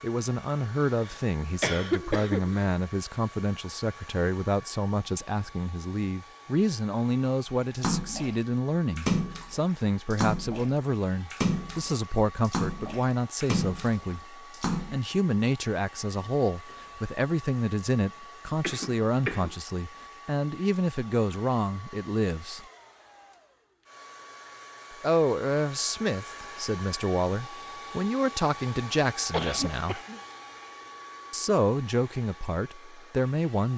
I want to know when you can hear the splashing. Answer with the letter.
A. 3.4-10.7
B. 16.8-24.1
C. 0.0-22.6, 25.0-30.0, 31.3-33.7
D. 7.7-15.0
D.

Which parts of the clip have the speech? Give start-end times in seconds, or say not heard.
0.0-22.6, 25.0-30.0, 31.3-33.7.